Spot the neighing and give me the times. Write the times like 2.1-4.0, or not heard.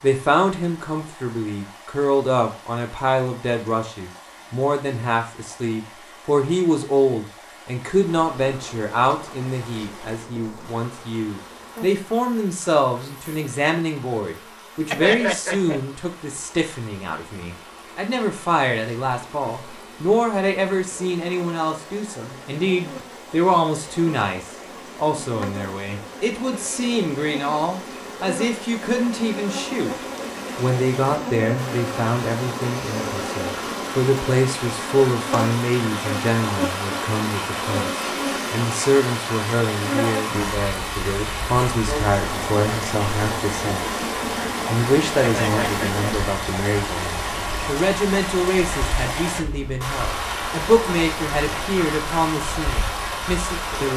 14.9-15.8, 45.2-46.0.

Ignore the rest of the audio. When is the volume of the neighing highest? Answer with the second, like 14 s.
15 s.